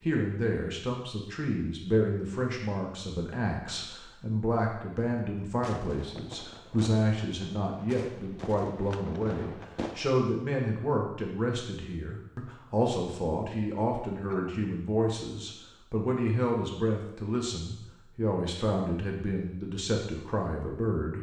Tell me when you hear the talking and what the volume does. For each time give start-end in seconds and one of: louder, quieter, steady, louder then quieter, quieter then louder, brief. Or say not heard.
0.0-21.1 steady.